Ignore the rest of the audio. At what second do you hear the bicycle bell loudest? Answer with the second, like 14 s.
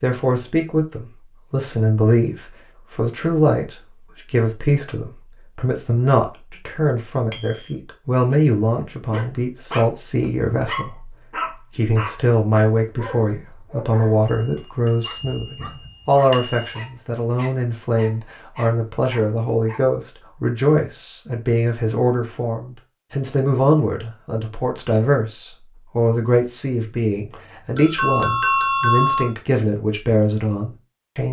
29 s.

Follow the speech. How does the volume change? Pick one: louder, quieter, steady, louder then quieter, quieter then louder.
steady.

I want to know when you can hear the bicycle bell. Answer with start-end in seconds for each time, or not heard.
7.3-7.8, 14.2-16.7, 27.3-29.3.